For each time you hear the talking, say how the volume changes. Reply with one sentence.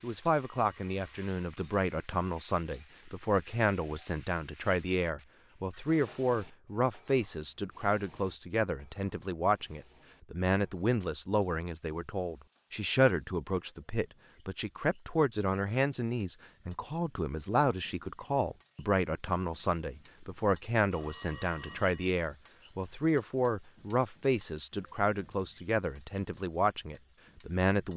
The talking can be heard from 0.0 to 27.9 s, at a steady volume.